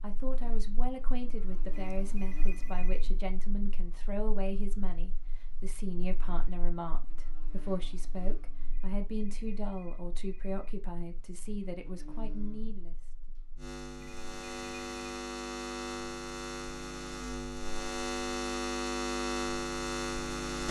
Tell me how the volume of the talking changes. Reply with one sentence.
The volume of the talking stays about the same.